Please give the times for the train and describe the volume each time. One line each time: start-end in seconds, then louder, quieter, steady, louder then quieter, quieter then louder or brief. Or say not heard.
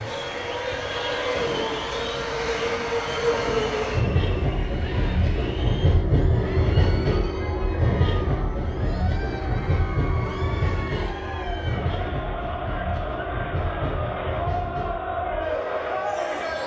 0.0-16.6 quieter.